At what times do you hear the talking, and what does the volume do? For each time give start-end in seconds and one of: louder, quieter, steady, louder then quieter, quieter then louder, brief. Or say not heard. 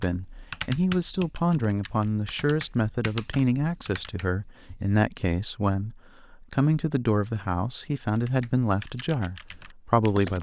0.0-10.3 steady.